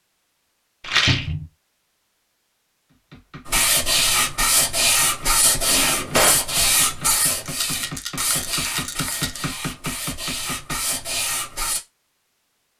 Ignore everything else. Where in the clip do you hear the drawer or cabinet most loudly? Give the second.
6 s.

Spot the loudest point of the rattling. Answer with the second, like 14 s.
1 s.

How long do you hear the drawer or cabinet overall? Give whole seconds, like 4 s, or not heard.
2 s.